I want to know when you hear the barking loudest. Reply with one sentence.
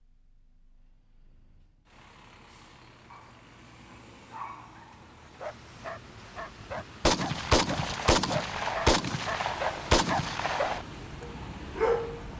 The loudest moment of the barking is at 12 seconds.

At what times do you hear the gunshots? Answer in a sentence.
You can hear the gunshots from 7.0 to 10.8 s.